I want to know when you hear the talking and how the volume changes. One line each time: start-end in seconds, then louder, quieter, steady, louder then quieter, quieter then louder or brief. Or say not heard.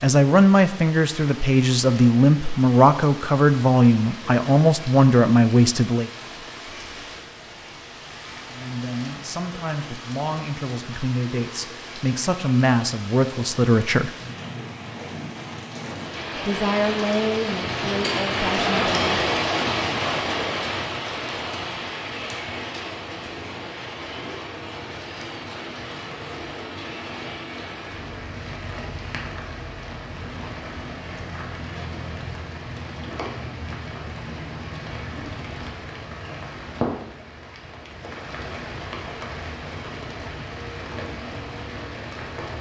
0.0-6.1 steady
8.5-14.1 louder
16.4-19.2 brief.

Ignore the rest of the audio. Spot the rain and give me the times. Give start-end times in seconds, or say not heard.
0.0-42.5.